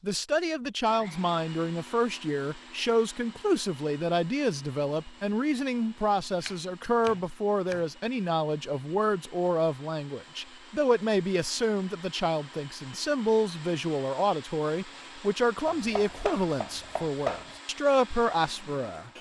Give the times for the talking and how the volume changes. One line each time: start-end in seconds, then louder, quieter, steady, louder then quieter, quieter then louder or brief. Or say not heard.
0.0-19.1 steady.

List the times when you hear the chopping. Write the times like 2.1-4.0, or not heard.
6.4-7.8, 15.7-17.6.